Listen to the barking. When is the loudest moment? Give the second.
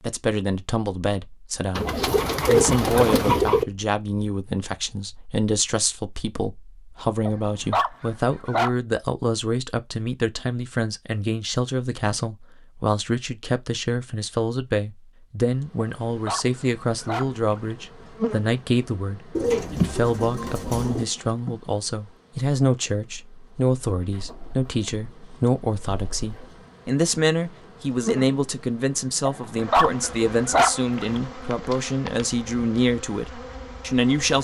31 s.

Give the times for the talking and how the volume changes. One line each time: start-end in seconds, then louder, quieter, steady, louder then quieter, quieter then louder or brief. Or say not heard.
0.0-1.9 brief
2.5-34.3 steady.